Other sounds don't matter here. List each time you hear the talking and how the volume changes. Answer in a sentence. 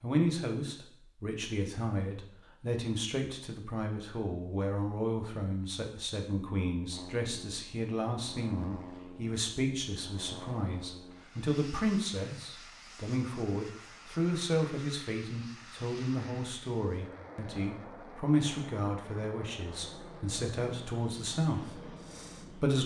The talking can be heard from 0.0 to 22.8 s, at a steady volume.